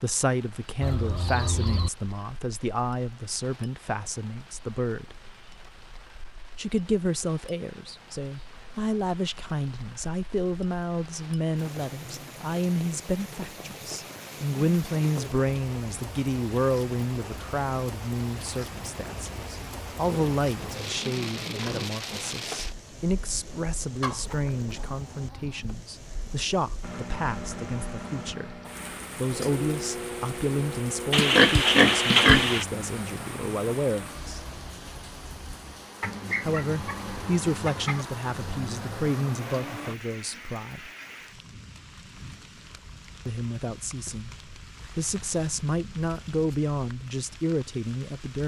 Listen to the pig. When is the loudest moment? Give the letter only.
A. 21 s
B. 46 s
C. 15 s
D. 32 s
D.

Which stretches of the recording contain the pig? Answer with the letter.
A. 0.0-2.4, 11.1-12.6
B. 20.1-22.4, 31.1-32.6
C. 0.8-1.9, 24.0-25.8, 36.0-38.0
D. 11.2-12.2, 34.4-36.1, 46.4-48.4
B.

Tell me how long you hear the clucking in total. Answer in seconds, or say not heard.
5 s.